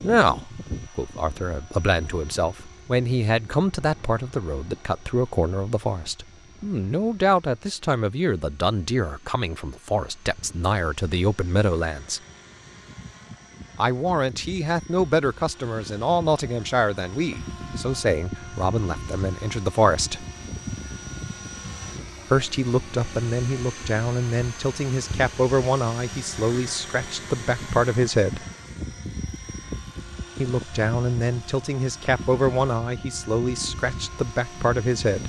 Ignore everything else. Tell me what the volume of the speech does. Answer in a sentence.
The loudness of the speech stays about the same.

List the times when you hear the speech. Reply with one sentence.
The speech can be heard from 0.0 to 12.2 s, from 13.8 to 20.2 s, from 22.3 to 28.4 s and from 30.4 to 35.2 s.